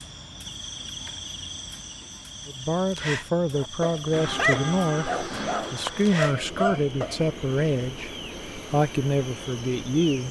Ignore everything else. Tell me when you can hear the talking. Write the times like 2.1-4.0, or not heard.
2.5-8.1, 8.7-10.2.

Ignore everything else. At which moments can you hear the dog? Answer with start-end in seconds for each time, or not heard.
3.5-7.2.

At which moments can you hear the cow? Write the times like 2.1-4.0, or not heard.
4.1-6.2.